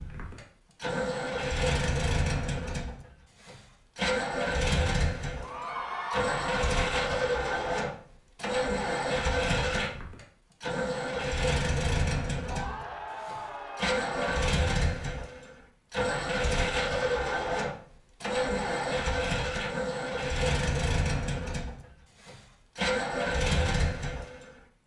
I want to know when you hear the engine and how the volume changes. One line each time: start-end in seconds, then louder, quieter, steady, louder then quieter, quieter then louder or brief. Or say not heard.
0.0-24.5 steady.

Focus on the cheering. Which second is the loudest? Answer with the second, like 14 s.
6 s.